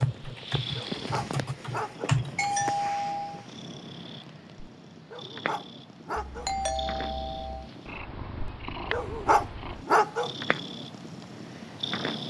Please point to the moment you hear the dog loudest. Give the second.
10 s.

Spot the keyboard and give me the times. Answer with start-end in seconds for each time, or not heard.
0.0-2.7.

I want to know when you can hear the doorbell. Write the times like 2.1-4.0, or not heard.
2.4-3.5, 6.2-7.7.